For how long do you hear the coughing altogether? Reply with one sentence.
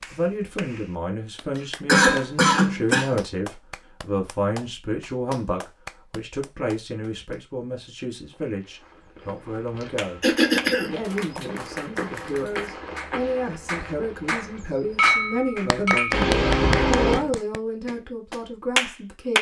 The coughing can be heard for 4 seconds in total.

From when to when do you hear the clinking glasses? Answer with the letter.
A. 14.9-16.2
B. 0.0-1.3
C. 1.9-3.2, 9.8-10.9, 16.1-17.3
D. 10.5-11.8
A.